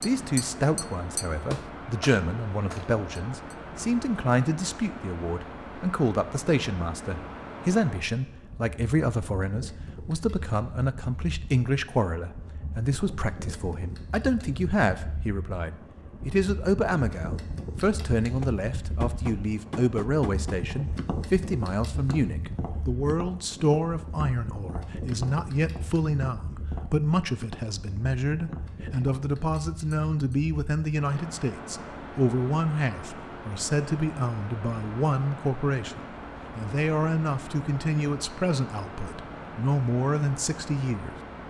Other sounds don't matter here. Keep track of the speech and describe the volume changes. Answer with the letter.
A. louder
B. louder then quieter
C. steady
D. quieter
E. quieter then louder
C.